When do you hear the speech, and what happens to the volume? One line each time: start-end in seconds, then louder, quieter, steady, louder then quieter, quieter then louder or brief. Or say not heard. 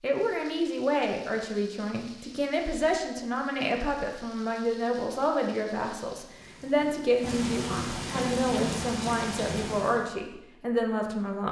0.0-11.4 steady.